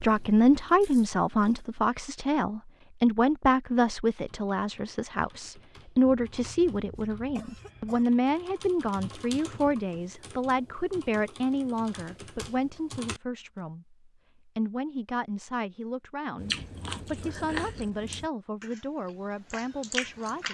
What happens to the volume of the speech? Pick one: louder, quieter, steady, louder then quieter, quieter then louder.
quieter.